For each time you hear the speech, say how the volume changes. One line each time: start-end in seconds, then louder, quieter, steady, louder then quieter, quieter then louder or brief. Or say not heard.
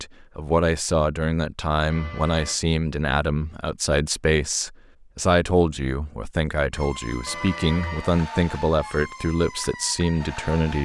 0.0-10.8 steady.